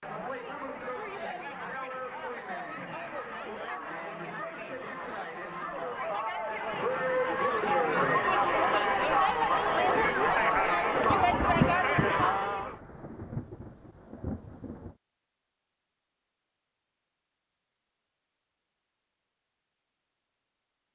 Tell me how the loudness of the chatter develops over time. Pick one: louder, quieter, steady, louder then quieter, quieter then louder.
louder.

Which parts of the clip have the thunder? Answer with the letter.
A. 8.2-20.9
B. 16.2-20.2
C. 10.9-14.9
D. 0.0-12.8
C.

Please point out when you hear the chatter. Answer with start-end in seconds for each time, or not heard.
0.0-12.8.